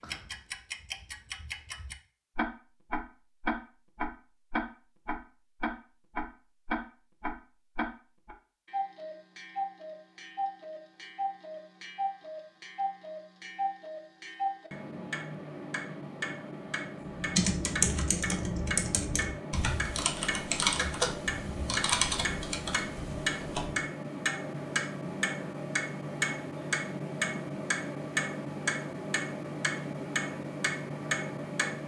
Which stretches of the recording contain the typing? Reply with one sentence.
The typing can be heard from 17.1 to 23.8 s.